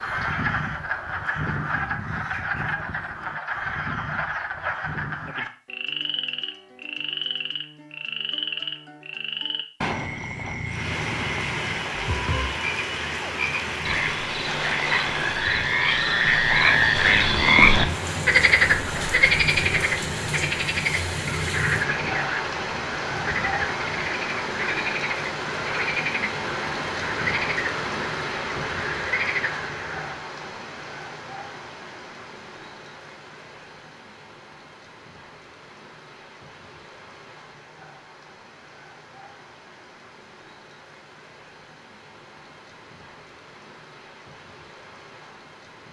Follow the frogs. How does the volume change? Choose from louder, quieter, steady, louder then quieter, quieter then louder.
louder then quieter.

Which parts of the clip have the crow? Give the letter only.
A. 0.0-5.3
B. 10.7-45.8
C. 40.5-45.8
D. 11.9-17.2
A.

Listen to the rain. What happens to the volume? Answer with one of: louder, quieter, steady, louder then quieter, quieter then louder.
quieter.